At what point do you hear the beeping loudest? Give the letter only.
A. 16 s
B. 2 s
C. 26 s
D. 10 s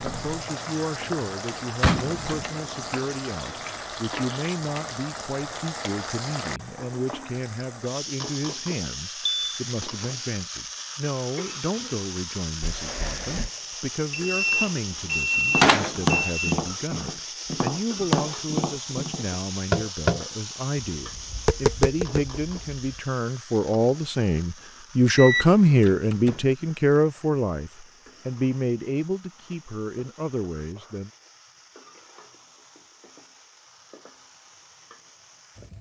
A.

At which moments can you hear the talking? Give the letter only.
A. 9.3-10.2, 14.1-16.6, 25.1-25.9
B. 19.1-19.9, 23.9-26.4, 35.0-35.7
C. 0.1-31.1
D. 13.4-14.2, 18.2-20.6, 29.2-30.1
C.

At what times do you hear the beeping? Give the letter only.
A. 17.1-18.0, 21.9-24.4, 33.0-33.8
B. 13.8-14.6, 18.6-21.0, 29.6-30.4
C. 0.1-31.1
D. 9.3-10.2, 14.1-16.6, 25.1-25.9
D.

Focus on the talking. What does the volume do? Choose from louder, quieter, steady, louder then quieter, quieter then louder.
louder.